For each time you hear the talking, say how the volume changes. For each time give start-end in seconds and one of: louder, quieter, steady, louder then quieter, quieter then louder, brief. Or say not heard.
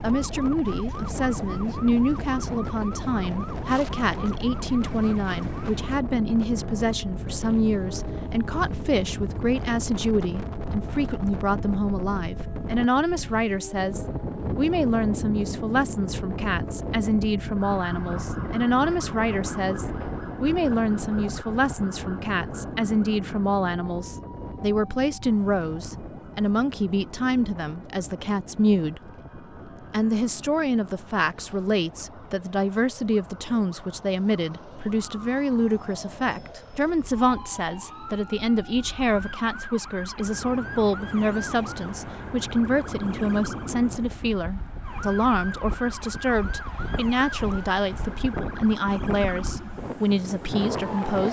0.0-29.1 steady
29.9-51.2 steady.